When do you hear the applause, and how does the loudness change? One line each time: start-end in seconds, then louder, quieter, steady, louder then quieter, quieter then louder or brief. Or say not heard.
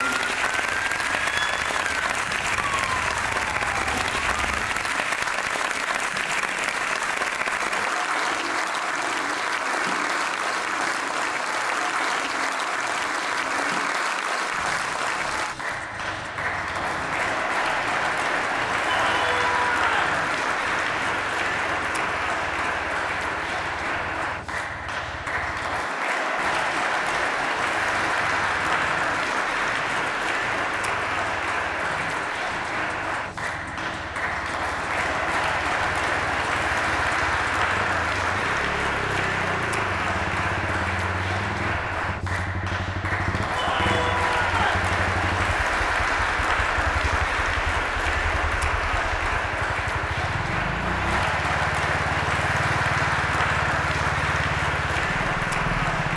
0.0-56.1 steady.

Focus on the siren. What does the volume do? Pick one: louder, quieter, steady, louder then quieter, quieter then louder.
steady.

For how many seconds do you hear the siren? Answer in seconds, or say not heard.
5 s.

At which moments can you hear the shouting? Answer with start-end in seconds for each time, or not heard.
18.9-20.2, 43.5-44.9.